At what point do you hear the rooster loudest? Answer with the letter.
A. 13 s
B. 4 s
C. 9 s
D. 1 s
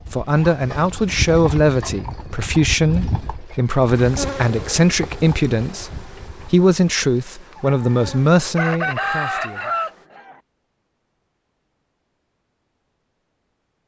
C.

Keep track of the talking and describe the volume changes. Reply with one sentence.
The volume of the talking stays about the same.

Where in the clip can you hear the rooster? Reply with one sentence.
You can hear the rooster from 7.5 to 10.4 s.